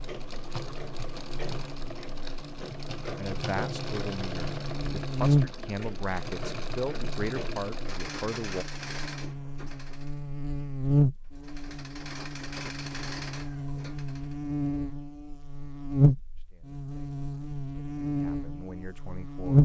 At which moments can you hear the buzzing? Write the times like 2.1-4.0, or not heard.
0.0-19.6.